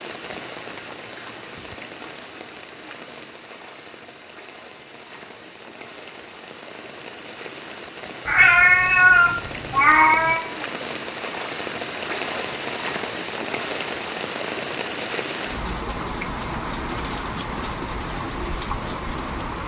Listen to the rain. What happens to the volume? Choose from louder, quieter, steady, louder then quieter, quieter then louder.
louder.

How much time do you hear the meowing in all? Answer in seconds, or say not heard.
2 s.